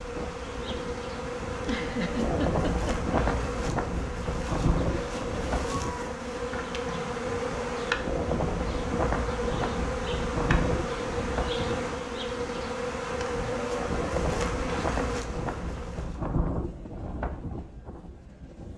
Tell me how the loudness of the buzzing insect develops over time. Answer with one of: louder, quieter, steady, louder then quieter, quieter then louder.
steady.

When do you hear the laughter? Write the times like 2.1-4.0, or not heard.
1.5-3.1.